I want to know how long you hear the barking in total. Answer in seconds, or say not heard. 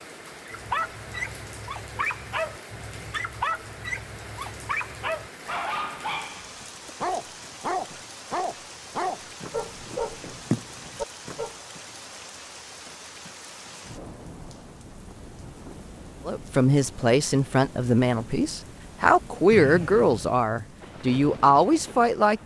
11 s.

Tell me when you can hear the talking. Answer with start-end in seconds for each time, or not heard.
16.2-22.4.